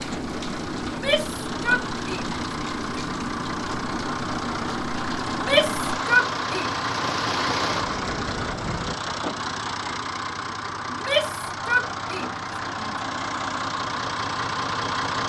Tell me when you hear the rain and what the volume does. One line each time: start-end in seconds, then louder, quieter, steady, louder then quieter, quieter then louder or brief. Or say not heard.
0.0-8.9 steady.